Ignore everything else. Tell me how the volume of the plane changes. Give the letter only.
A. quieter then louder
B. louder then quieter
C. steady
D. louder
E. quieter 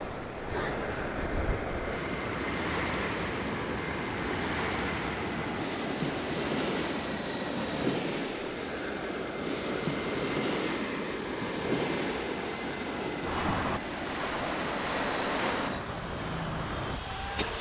C.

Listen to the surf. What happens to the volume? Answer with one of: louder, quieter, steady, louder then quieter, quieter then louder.
steady.